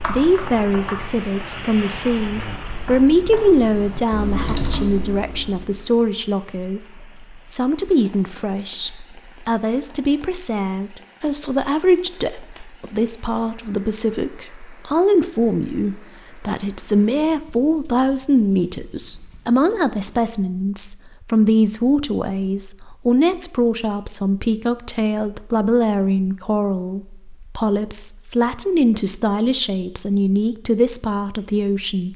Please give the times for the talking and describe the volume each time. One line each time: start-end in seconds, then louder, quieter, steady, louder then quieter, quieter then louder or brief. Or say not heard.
0.1-32.1 steady.